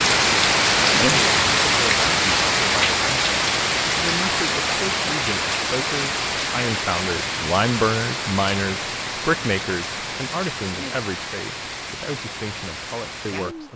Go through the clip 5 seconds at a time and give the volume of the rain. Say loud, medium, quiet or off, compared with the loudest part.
loud, medium, quiet.